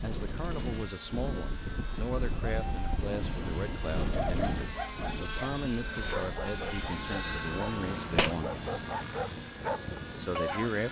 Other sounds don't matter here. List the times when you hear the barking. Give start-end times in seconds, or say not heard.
4.0-10.7.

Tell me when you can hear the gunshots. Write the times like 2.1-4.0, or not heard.
8.2-9.4.